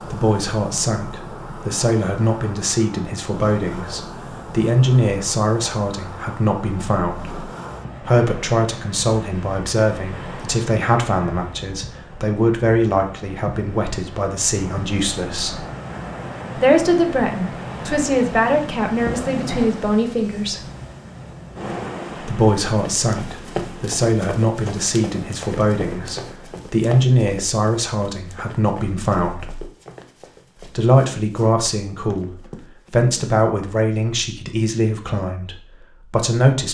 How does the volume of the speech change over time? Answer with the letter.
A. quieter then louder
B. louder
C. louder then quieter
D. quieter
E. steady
E.